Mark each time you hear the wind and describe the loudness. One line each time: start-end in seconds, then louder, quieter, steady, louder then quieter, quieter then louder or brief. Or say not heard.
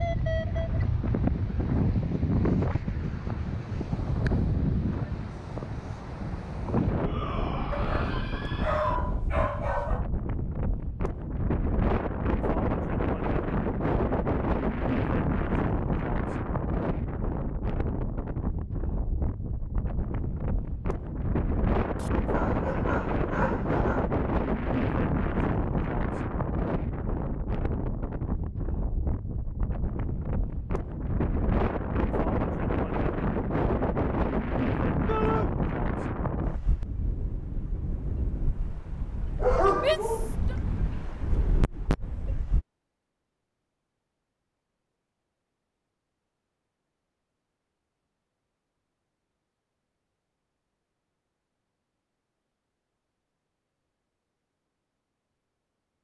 0.0-42.6 steady.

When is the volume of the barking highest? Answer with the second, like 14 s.
40 s.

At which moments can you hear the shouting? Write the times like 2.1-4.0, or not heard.
7.0-9.0, 35.0-35.5, 39.8-40.5.